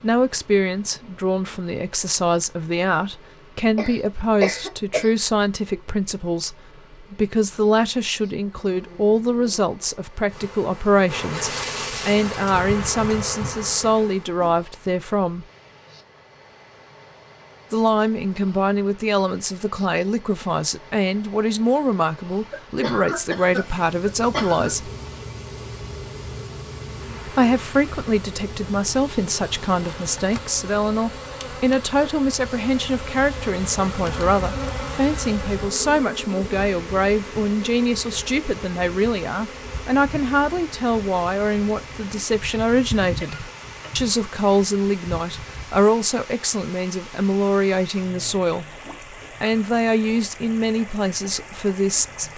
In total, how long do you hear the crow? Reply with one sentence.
The crow can't be heard in this clip.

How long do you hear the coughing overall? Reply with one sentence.
The coughing can be heard for 4 seconds in total.